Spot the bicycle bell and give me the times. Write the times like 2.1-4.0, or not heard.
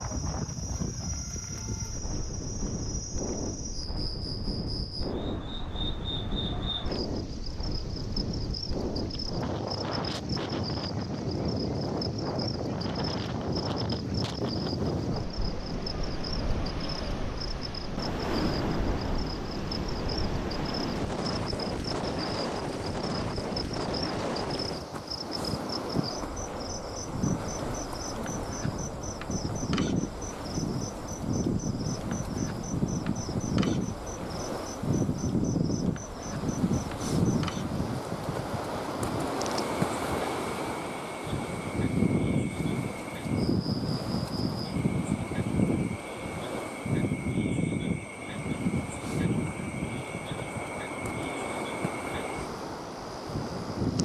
not heard.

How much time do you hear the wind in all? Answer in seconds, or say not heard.
54 s.